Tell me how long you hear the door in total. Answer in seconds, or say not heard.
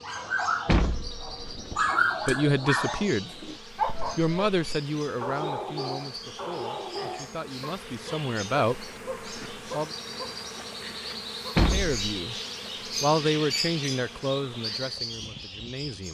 2 s.